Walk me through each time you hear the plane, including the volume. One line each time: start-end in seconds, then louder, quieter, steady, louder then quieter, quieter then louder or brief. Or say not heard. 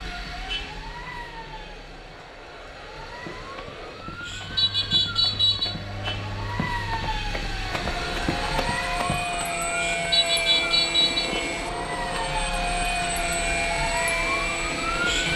0.0-15.3 louder.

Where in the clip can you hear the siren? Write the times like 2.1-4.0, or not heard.
0.0-15.3.